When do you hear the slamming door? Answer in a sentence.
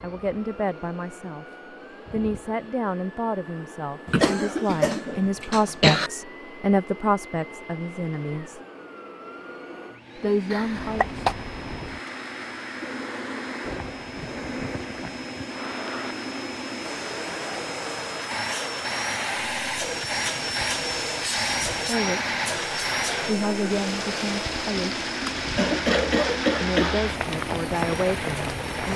The slamming door can't be heard in this clip.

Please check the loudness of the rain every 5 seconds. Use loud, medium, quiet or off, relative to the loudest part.
off, off, medium, medium, loud, loud.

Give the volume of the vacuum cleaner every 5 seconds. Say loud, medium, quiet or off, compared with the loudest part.
quiet, quiet, medium, loud, loud, medium.